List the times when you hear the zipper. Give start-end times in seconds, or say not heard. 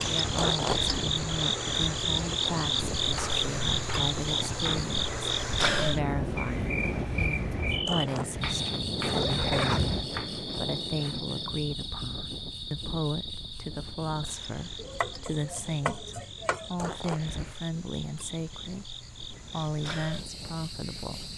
0.3-1.1, 7.8-10.1, 16.8-17.6.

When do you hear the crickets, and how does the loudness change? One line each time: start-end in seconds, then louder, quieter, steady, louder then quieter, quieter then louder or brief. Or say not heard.
0.0-21.3 quieter.